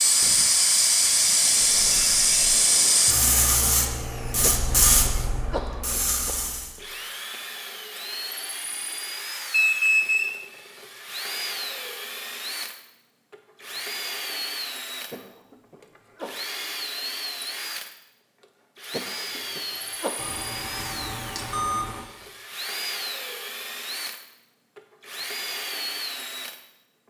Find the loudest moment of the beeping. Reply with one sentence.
The volume of the beeping peaks at 10 seconds.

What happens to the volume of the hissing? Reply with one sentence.
The volume of the hissing goes down.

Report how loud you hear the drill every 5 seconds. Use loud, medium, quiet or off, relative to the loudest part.
medium, loud, loud, loud, loud, loud.